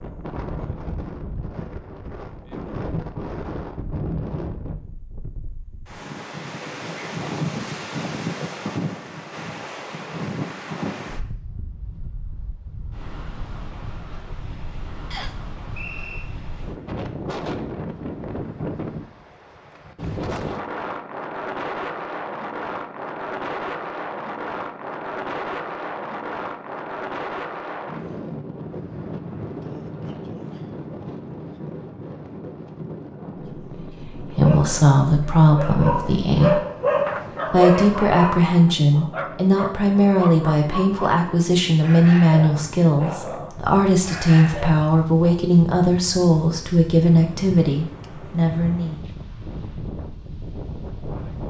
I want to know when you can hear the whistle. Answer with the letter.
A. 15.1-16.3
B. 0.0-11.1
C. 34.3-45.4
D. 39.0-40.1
A.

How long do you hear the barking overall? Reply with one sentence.
The barking can be heard for 11 seconds in total.